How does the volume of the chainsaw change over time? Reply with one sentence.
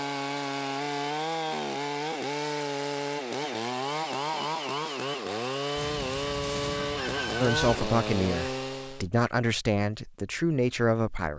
The loudness of the chainsaw stays about the same.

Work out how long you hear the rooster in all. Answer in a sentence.
The rooster can be heard for 2 seconds in total.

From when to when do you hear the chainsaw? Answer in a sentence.
The chainsaw can be heard from 0.0 to 9.1 s.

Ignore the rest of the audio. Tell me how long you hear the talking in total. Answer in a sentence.
You can hear the talking for 4 seconds altogether.